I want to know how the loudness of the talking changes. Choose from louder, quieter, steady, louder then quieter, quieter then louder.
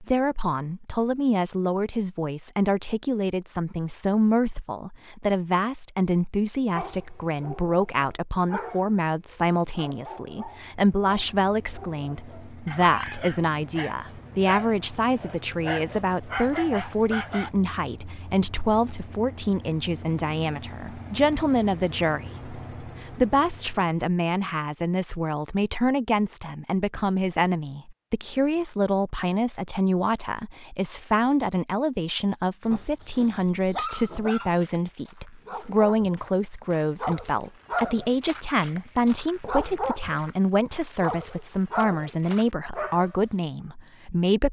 steady.